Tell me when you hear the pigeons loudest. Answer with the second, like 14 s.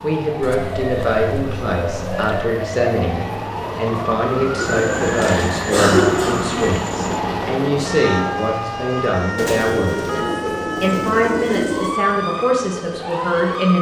6 s.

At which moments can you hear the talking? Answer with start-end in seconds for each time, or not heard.
0.0-13.7.